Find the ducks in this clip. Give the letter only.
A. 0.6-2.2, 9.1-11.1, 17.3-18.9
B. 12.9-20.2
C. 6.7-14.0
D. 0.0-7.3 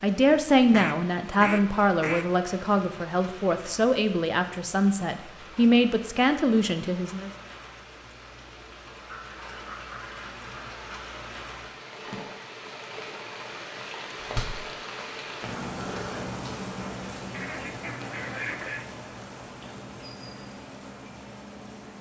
A.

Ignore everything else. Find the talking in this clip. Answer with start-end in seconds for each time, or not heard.
0.0-7.3.